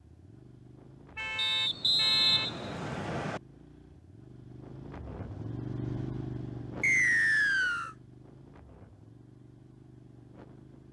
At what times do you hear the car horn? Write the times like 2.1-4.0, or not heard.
1.1-2.6.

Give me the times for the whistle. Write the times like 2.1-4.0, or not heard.
1.4-3.4, 6.8-8.0.